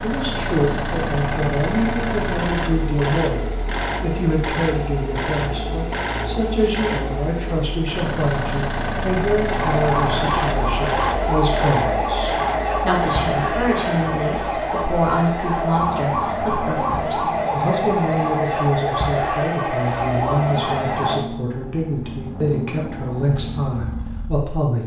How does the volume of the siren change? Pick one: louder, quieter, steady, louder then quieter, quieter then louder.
steady.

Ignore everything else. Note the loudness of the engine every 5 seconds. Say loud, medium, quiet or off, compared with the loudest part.
loud, loud, loud, medium, medium.